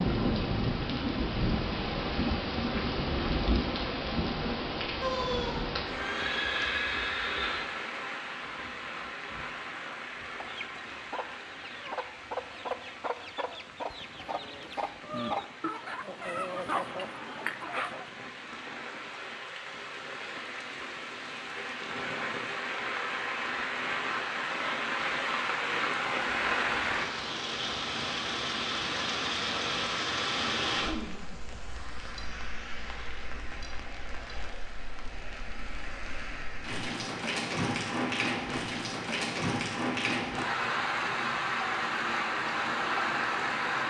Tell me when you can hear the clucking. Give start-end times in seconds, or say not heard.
9.8-18.1.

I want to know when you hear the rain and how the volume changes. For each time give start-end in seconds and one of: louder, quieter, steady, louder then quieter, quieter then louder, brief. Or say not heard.
0.0-43.8 quieter then louder.